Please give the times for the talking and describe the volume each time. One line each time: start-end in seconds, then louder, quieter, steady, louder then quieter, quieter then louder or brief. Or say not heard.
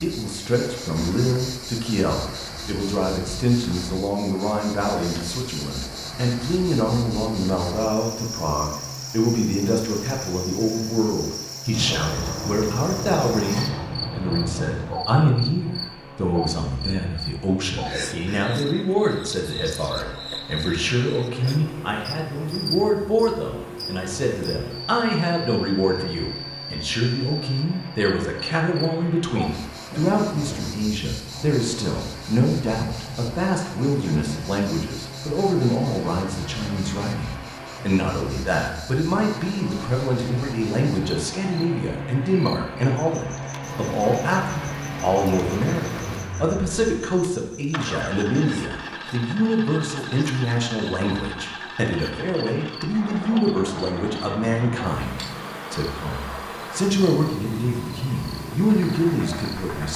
0.0-59.9 steady.